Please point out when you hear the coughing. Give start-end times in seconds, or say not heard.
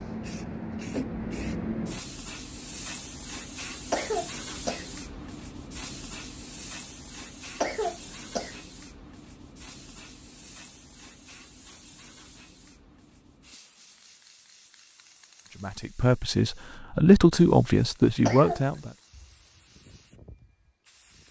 3.9-4.9, 7.6-8.6, 18.2-18.8.